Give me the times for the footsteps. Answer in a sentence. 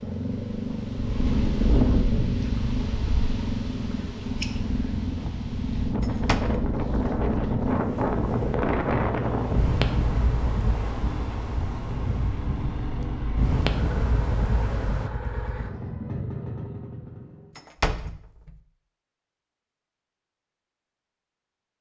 You can't hear the footsteps here.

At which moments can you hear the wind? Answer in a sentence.
You can hear the wind from 0.0 to 15.1 s.